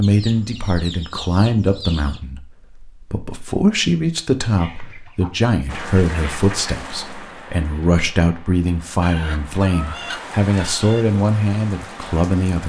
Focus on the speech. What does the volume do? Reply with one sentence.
The loudness of the speech stays about the same.